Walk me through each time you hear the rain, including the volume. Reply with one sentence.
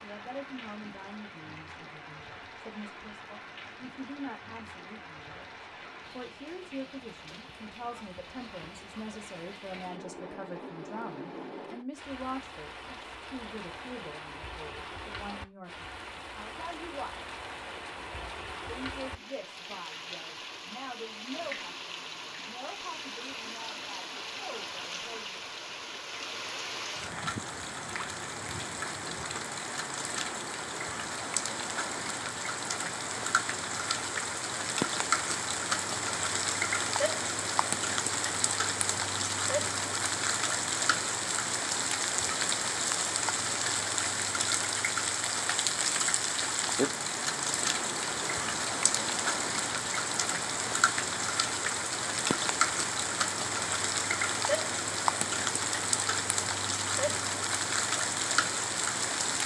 You can hear the rain from 0.0 to 59.4 s, getting louder.